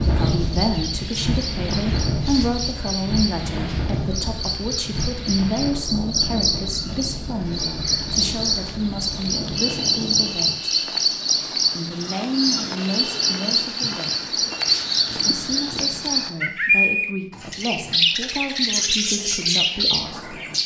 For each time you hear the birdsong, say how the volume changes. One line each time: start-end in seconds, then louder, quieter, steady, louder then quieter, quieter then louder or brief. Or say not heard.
0.0-20.6 louder.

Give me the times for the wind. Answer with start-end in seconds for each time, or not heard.
0.0-10.6.